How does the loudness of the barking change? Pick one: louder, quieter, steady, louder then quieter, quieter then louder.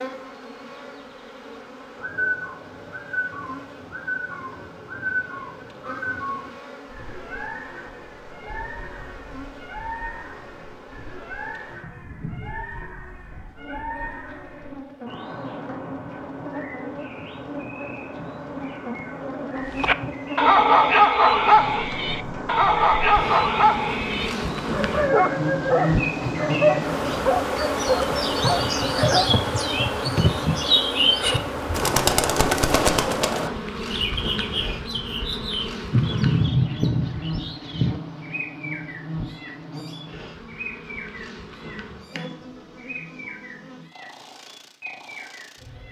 quieter.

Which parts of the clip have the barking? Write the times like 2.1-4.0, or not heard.
19.7-29.4.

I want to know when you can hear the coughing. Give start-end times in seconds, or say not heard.
not heard.